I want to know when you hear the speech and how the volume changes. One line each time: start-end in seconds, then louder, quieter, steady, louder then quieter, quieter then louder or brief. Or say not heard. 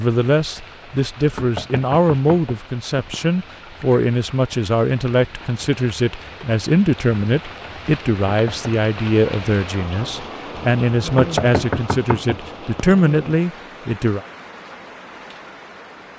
0.0-14.2 steady.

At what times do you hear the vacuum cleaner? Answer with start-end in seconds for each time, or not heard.
not heard.